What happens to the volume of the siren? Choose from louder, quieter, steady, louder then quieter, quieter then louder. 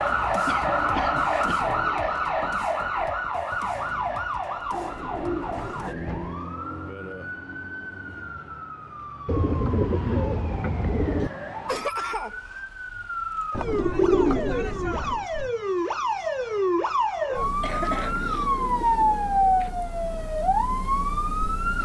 quieter then louder.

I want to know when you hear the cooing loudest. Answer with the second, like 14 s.
14 s.